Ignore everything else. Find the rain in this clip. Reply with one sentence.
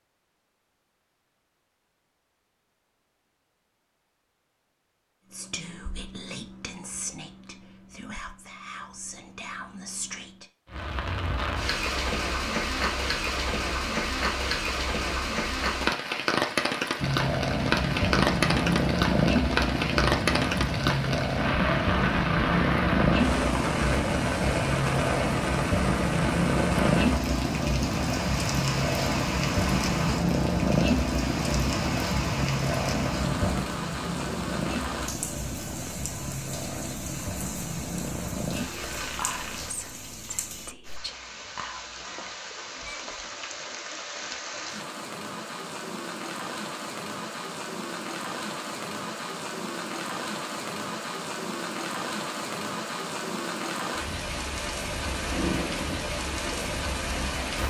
You can hear the rain from 10.7 to 57.6 s.